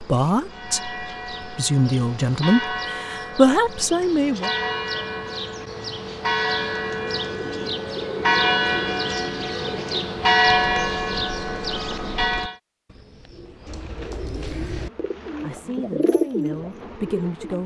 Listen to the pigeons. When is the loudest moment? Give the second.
16 s.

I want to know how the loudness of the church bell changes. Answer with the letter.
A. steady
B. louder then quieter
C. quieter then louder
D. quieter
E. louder
E.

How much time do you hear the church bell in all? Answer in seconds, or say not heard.
12 s.